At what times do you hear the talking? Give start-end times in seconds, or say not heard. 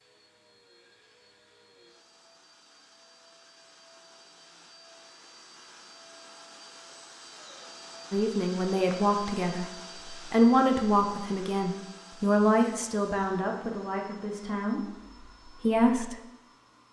8.1-16.1.